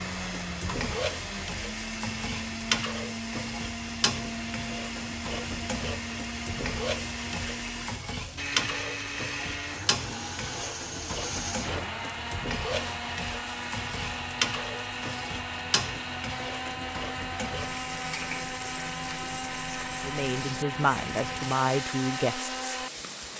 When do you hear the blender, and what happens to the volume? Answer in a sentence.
You can hear the blender from 0.0 to 23.3 s, at a steady volume.